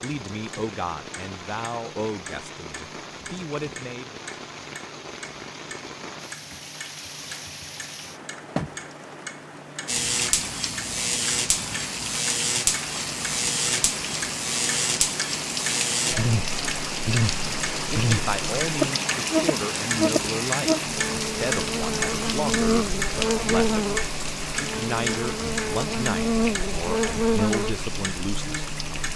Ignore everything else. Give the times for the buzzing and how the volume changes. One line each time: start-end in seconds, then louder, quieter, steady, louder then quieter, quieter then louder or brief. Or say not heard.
9.8-28.9 steady.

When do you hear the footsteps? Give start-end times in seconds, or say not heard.
not heard.